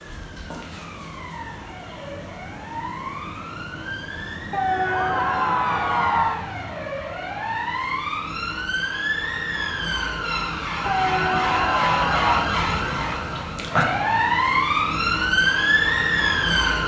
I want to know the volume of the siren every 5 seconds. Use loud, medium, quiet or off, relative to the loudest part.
quiet, medium, loud, loud.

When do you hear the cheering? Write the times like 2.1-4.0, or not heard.
4.5-6.5, 10.8-12.4.